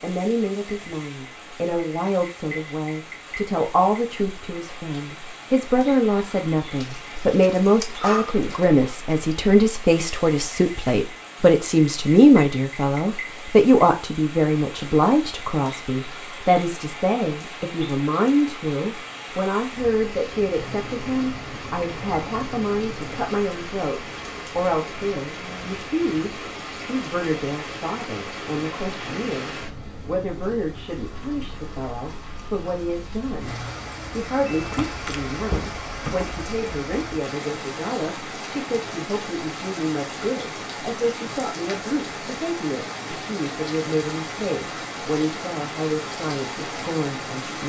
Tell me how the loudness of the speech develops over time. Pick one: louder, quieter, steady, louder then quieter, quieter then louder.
quieter.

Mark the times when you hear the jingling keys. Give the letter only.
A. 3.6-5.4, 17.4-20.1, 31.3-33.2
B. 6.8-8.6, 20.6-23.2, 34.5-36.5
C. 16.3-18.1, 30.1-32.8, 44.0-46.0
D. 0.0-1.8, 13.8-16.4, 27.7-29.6
B.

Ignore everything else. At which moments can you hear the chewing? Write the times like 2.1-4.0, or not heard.
not heard.